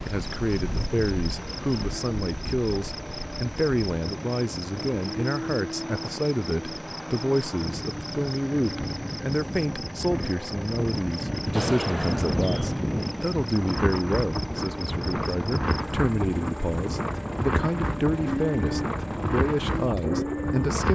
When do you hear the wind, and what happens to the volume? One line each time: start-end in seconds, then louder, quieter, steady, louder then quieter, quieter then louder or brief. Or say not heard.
0.0-20.9 louder.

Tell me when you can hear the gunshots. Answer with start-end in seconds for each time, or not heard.
11.5-12.8.